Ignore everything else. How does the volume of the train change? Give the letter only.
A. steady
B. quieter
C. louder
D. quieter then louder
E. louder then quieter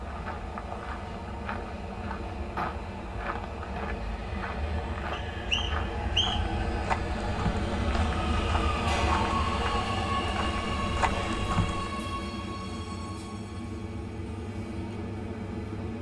E.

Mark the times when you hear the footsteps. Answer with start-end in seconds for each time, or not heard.
0.0-11.9.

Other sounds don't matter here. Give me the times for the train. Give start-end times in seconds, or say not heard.
0.0-15.9.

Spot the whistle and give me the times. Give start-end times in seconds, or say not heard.
5.1-6.5.